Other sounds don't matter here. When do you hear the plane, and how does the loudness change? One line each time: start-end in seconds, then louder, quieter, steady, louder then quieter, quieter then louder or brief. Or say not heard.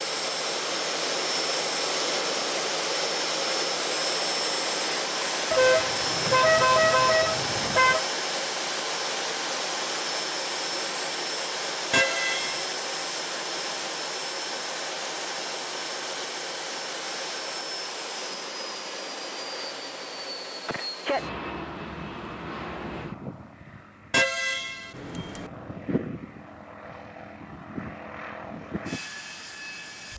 0.0-30.1 quieter.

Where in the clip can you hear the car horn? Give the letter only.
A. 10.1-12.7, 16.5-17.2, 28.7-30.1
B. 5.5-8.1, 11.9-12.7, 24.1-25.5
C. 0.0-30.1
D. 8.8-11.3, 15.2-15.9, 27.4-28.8
B.